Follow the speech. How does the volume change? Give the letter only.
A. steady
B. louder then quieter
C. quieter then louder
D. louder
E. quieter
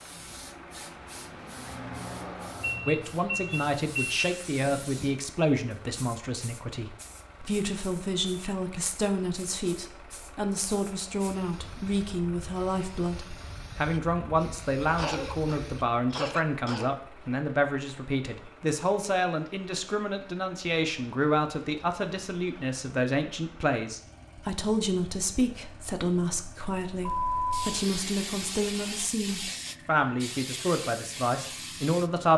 A.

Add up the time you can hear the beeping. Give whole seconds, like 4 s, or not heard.
3 s.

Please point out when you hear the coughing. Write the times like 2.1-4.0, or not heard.
14.9-16.9.